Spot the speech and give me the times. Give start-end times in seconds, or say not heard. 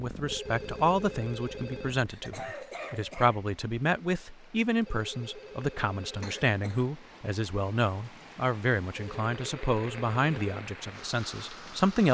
0.0-12.0.